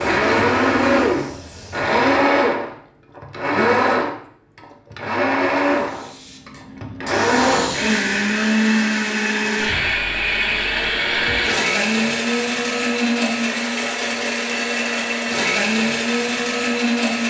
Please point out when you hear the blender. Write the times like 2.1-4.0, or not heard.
0.0-17.2.